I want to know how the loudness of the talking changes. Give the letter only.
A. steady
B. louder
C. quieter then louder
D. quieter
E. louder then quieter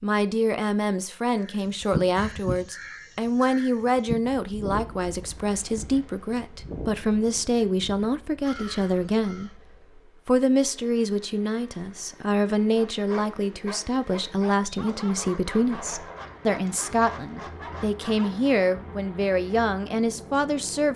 A.